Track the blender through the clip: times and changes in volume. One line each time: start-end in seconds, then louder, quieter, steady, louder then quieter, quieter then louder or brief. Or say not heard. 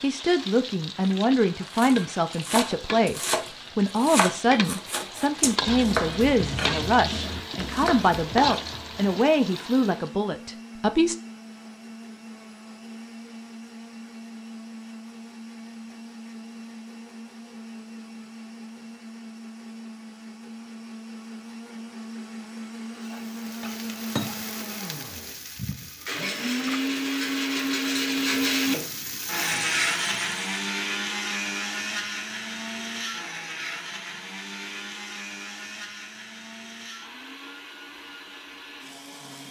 7.2-39.4 louder then quieter.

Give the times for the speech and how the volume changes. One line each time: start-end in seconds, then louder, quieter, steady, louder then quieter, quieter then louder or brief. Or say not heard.
0.0-11.2 steady.